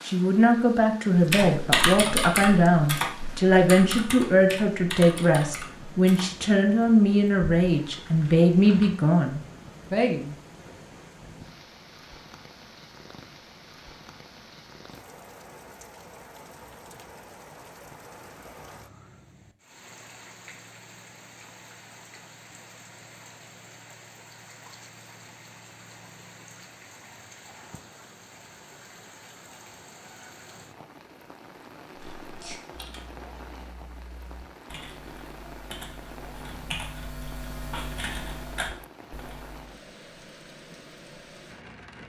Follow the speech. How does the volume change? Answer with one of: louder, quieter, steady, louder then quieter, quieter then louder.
steady.